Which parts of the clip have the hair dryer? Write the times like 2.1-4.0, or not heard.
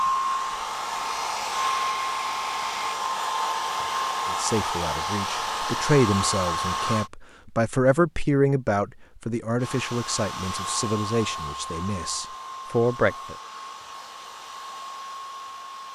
0.0-7.1, 9.6-15.8.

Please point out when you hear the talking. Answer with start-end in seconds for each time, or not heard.
4.3-13.3.